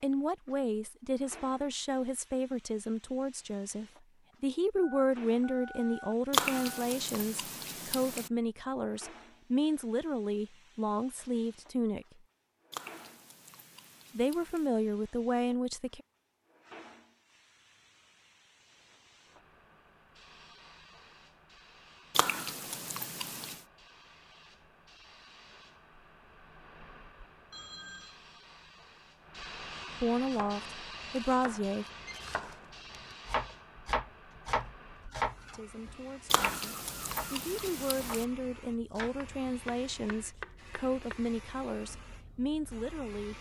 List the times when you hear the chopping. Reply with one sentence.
The chopping can be heard from 30.3 to 41.2 s.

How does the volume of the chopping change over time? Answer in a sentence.
The volume of the chopping goes up, then down.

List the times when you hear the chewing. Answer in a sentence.
You can hear the chewing from 6.3 to 8.3 s, from 12.7 to 14.7 s, from 22.1 to 23.6 s and from 36.3 to 38.2 s.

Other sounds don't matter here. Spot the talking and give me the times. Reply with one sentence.
The talking can be heard from 0.0 to 12.1 s, from 14.2 to 16.0 s, from 30.0 to 31.9 s and from 35.5 to 43.3 s.